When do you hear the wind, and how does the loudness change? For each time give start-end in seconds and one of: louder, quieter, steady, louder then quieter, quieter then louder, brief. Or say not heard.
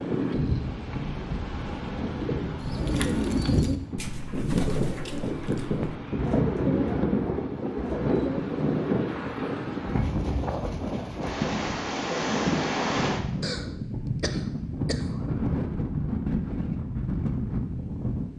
0.0-18.3 steady.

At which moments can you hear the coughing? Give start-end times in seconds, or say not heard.
13.4-15.1.